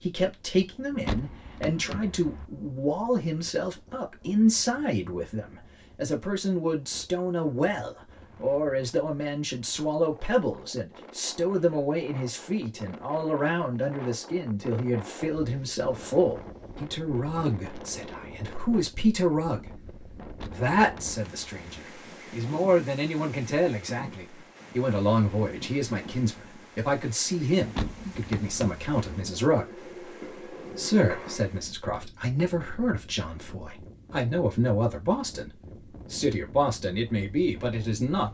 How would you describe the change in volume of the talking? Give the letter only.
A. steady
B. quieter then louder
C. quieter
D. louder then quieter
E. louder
A.